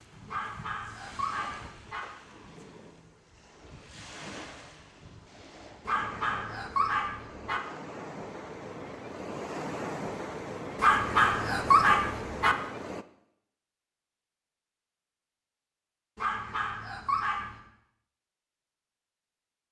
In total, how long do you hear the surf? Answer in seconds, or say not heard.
13 s.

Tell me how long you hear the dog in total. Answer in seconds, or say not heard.
7 s.